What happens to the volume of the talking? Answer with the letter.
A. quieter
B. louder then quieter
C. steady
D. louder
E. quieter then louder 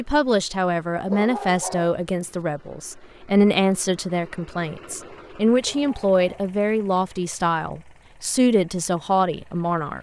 C.